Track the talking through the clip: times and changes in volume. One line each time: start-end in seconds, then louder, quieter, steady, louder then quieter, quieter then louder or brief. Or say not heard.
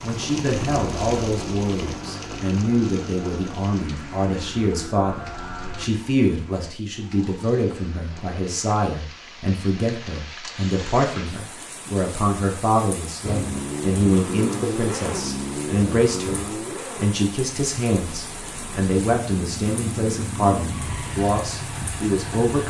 0.0-22.6 steady.